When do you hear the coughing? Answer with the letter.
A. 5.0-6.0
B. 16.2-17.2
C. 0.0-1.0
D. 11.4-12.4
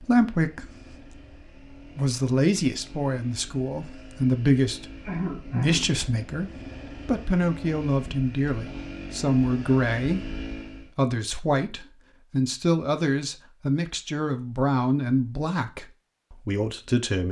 A.